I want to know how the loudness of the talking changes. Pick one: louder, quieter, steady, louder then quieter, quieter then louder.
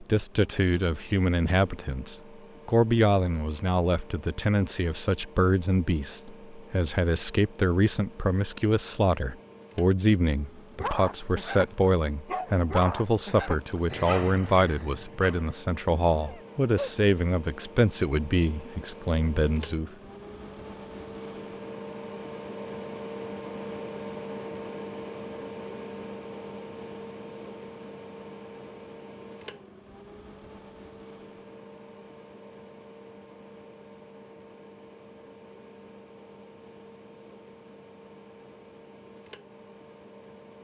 steady.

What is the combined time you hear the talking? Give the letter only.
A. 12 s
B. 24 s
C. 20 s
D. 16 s
C.